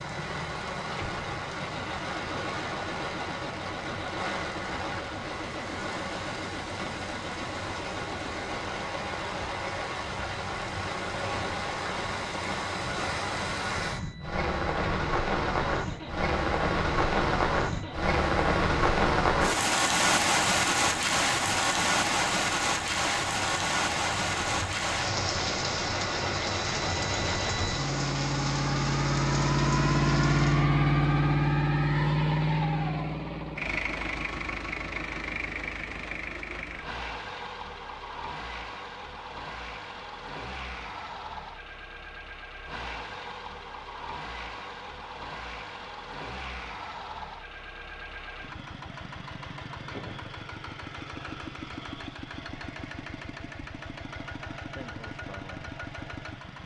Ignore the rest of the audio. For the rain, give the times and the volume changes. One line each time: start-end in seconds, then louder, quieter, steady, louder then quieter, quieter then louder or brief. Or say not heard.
0.0-30.7 louder then quieter.